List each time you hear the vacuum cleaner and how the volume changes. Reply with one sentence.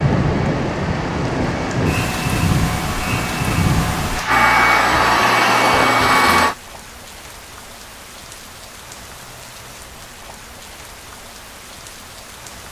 The vacuum cleaner can be heard from 0.0 to 6.5 s, getting louder.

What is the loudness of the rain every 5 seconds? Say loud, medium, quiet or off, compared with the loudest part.
loud, quiet, quiet.